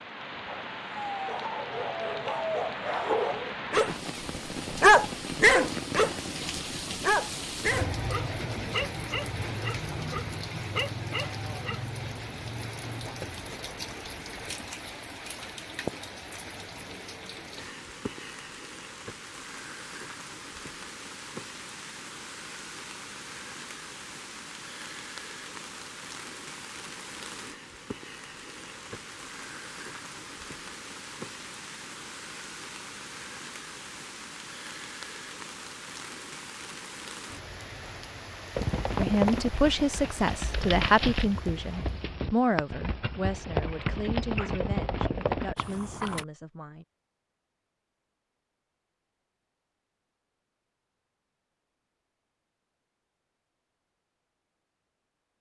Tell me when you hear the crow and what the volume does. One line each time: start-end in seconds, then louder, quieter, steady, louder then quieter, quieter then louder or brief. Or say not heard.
not heard.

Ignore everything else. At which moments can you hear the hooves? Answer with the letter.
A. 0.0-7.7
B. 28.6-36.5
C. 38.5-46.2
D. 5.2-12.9
C.